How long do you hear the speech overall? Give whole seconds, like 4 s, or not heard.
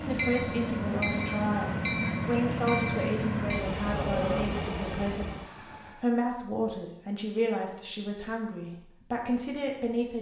10 s.